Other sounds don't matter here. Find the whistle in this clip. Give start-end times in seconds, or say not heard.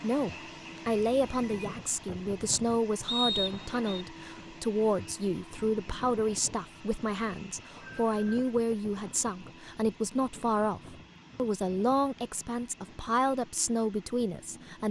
3.0-4.0.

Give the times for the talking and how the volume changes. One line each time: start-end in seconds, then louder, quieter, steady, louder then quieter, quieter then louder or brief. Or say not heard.
0.0-14.8 steady.